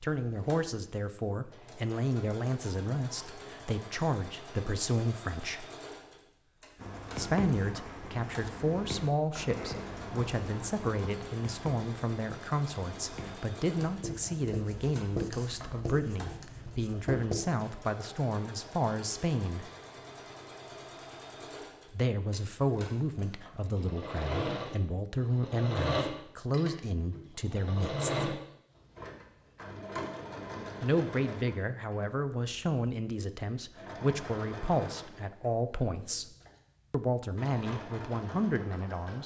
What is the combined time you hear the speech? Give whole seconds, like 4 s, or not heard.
32 s.